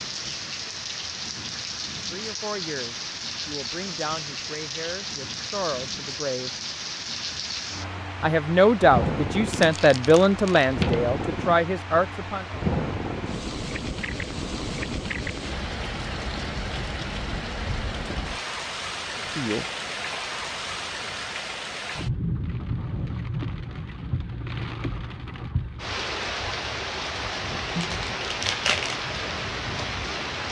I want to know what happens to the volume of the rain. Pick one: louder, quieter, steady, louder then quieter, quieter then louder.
steady.